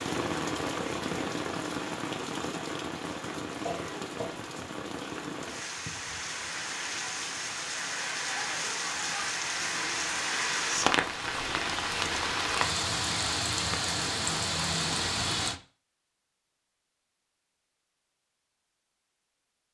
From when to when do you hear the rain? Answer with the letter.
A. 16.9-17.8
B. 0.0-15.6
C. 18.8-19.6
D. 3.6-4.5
B.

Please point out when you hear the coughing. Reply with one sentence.
You can hear the coughing from 3.6 to 4.5 s.